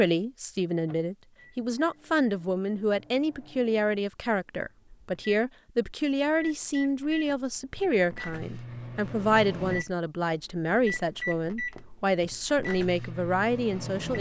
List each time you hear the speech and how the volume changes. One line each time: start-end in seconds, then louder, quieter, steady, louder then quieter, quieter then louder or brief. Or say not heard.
0.0-14.1 steady.